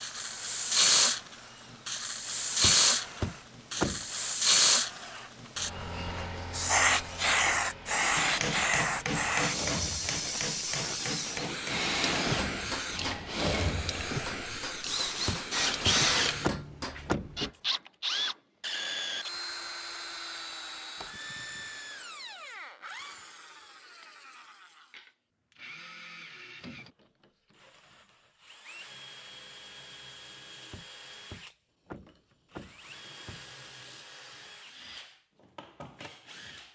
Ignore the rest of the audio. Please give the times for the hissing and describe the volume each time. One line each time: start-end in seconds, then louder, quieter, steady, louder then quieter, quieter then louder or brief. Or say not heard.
0.0-16.5 quieter.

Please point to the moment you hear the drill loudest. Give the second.
16 s.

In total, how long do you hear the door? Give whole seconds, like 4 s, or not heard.
6 s.